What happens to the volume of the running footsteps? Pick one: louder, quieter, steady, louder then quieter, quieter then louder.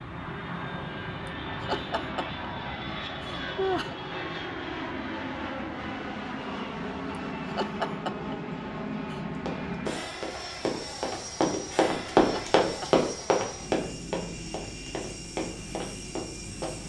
louder then quieter.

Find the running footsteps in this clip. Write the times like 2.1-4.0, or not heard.
9.3-16.8.